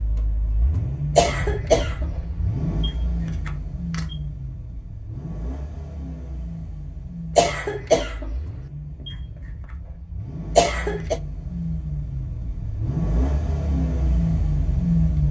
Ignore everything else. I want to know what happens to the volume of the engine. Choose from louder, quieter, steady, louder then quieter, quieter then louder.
quieter then louder.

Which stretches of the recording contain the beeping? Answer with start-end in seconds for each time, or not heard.
2.8-4.2, 9.1-9.8.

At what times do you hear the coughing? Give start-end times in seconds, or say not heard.
1.1-2.5, 7.3-8.7, 10.6-11.2.